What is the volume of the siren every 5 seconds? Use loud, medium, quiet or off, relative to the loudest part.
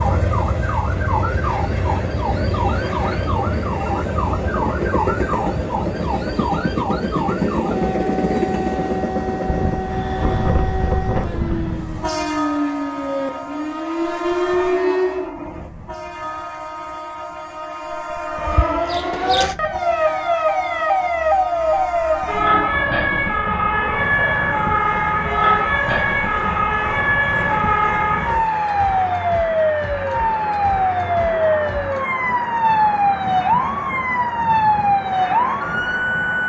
medium, medium, medium, loud, loud, loud, loud, loud.